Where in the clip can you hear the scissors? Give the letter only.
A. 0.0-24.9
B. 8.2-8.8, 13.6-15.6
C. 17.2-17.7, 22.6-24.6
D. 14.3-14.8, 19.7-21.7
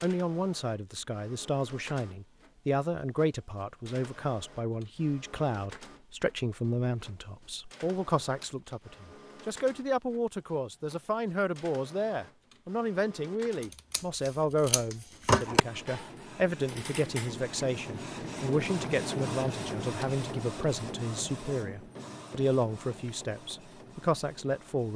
B.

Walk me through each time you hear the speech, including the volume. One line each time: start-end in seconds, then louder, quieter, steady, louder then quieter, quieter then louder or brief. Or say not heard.
0.0-24.9 steady.